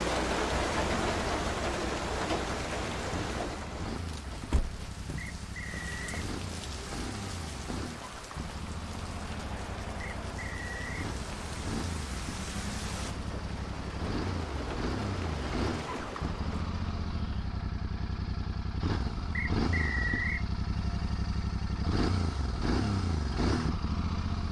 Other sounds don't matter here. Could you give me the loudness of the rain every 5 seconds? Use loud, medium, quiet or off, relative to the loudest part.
loud, medium, medium, medium, off.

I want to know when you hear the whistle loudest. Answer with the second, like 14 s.
20 s.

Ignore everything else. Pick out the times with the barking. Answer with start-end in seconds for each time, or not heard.
not heard.